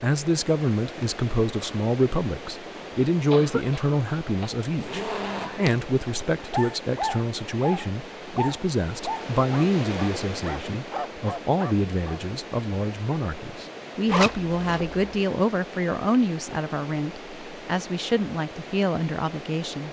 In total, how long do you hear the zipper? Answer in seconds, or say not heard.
2 s.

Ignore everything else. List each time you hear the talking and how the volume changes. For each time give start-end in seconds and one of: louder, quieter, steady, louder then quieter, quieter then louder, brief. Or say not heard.
0.0-19.8 steady.